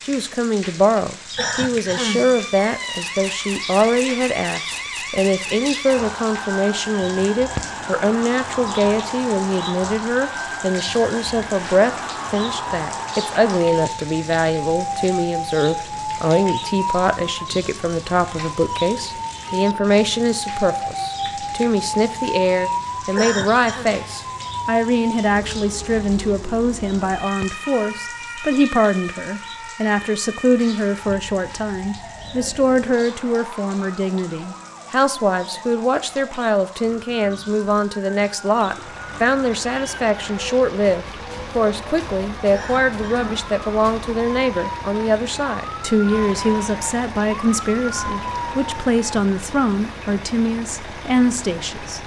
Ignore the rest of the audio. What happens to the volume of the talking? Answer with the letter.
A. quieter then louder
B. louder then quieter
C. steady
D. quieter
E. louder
C.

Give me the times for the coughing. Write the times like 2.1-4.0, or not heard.
1.4-2.3, 23.1-23.9, 42.5-43.5.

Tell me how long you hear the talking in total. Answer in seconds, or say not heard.
52 s.